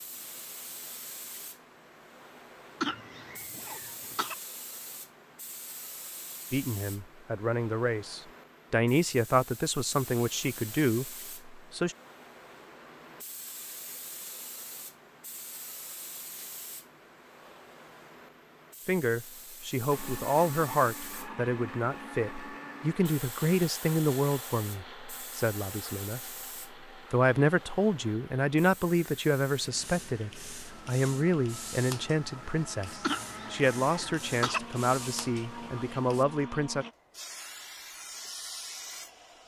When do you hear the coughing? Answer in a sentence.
You can hear the coughing from 2.8 to 4.3 s and from 33.0 to 34.6 s.